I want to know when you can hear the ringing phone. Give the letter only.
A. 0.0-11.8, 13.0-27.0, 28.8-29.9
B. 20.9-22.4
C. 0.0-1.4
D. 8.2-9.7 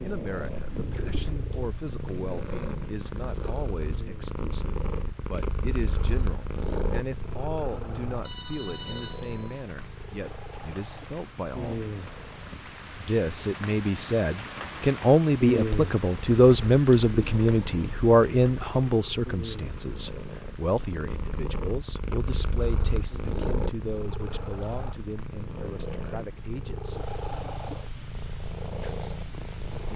D.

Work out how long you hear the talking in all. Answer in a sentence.
You can hear the talking for 27 seconds altogether.